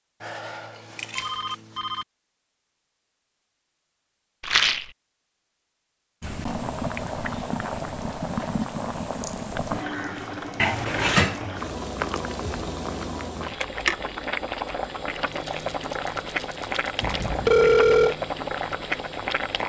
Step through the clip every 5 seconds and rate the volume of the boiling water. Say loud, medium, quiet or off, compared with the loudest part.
off, loud, loud, loud.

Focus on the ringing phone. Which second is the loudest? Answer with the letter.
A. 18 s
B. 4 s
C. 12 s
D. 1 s
A.